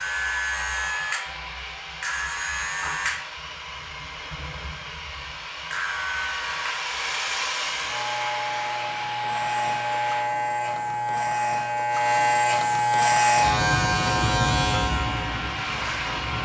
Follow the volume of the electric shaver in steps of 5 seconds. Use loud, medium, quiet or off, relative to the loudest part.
medium, medium, loud, medium.